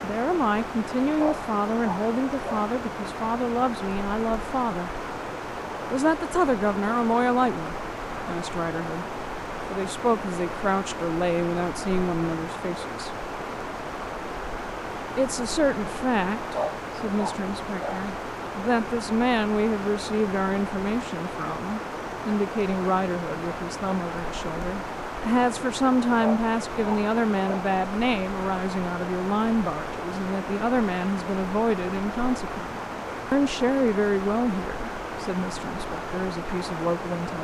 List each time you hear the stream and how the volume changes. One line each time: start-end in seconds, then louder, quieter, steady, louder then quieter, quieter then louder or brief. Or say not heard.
0.0-37.3 steady.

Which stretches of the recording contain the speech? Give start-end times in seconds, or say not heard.
0.0-5.0, 5.9-9.1, 9.7-13.1, 15.2-37.3.